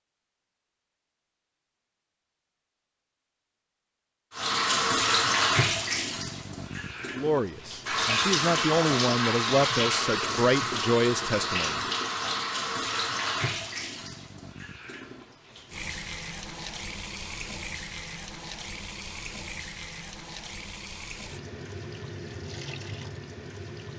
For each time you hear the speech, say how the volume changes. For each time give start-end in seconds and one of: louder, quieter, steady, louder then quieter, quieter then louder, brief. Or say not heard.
7.2-11.8 louder.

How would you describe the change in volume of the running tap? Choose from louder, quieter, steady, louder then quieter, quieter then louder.
quieter.